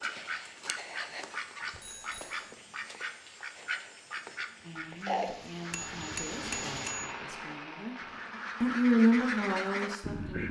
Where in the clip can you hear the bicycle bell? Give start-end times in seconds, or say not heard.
1.7-2.4, 5.7-7.2.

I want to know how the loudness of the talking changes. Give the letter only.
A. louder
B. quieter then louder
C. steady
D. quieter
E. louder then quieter
A.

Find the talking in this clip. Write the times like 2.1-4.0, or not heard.
4.6-10.4.